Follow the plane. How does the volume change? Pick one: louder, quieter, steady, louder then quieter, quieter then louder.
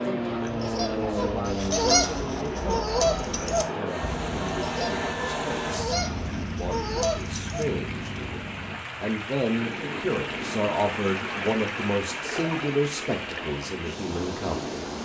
quieter.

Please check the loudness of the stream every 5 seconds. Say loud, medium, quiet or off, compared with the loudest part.
off, medium, loud.